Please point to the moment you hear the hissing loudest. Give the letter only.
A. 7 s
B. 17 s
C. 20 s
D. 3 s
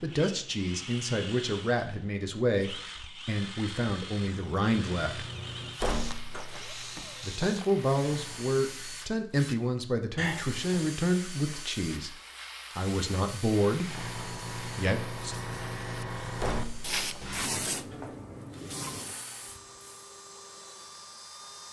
B.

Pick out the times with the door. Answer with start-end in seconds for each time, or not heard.
5.8-7.5, 16.4-18.1.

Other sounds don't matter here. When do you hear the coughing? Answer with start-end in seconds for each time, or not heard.
10.2-10.9.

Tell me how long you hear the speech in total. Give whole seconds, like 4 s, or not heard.
13 s.